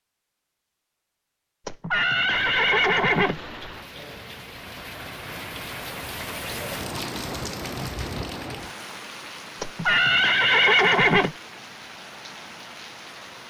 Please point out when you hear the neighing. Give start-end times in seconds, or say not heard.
1.6-3.4, 9.6-11.3.